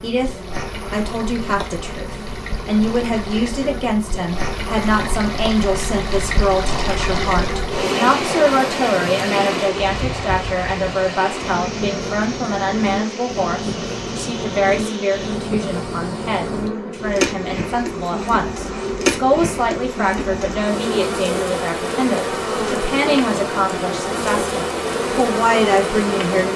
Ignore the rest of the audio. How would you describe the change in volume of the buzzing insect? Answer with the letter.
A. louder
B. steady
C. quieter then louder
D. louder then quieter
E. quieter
A.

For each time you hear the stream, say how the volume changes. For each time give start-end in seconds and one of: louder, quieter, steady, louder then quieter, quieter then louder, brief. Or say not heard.
0.2-16.7 louder then quieter.